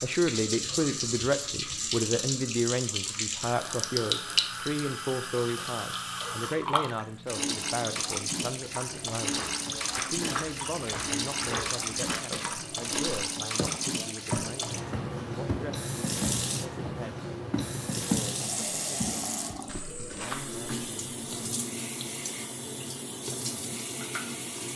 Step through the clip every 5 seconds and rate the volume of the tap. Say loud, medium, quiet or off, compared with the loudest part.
loud, loud, loud, loud, medium.